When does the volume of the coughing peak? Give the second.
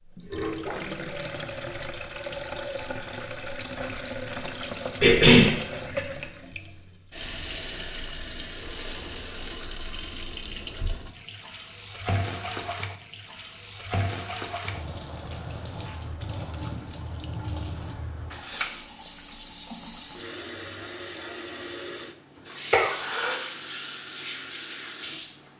5 s.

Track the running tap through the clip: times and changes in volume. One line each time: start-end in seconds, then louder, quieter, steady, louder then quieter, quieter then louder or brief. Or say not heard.
0.0-25.5 steady.